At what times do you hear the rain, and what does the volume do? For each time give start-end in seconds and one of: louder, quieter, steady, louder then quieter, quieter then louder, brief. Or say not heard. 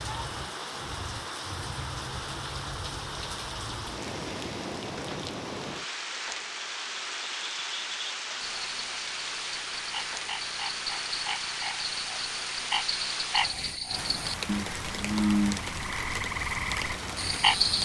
0.0-17.8 steady.